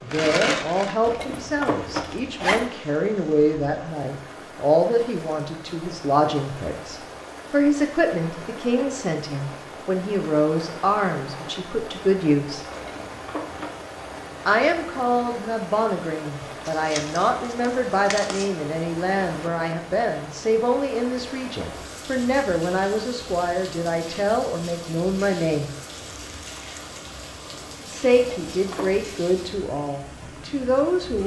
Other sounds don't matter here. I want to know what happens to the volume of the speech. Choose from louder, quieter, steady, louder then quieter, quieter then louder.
steady.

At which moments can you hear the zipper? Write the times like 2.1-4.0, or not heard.
1.0-2.7, 12.7-13.8, 28.1-29.1.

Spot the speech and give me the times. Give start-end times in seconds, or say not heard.
0.0-12.6, 14.4-25.7, 27.9-31.2.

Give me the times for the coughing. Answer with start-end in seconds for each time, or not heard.
not heard.